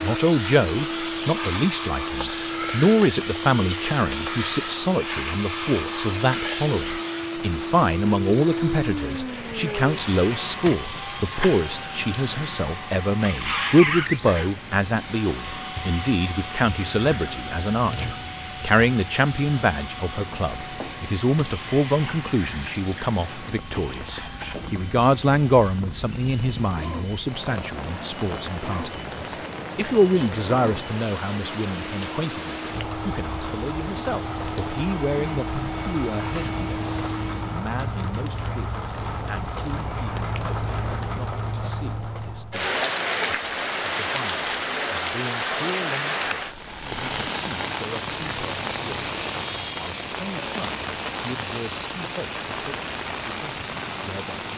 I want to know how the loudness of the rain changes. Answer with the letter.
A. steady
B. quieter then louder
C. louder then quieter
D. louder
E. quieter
D.